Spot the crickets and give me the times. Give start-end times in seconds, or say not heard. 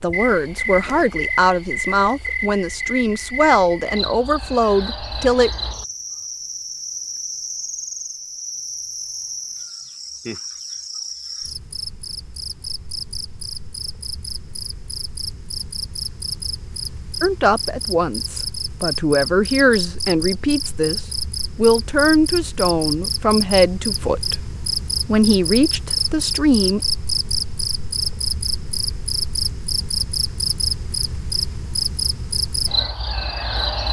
0.0-33.8.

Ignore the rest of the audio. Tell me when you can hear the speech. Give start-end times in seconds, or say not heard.
0.0-5.5, 17.2-24.4, 25.1-26.8.